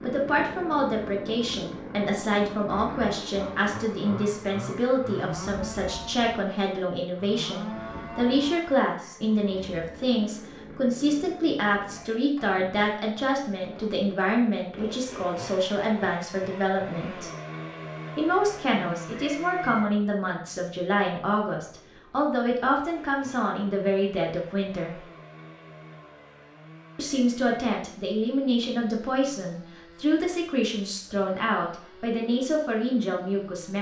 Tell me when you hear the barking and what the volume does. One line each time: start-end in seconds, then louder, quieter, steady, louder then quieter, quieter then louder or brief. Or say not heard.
not heard.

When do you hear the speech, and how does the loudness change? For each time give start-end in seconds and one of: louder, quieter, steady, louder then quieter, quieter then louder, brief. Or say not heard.
0.0-17.3 steady
18.1-25.0 steady
26.9-33.7 steady.